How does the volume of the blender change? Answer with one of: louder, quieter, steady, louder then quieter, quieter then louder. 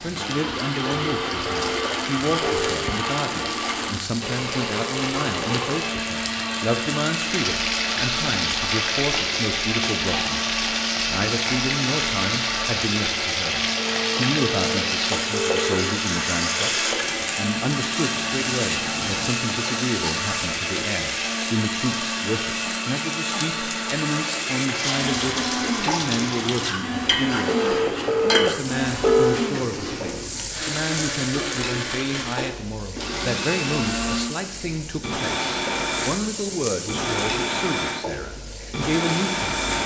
steady.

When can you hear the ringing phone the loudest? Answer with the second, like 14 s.
29 s.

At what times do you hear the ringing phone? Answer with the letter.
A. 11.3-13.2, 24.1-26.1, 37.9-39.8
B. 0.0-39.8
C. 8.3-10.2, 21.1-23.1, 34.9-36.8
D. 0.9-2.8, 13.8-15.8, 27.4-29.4
D.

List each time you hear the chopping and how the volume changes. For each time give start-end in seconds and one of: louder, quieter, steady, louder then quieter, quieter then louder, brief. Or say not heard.
not heard.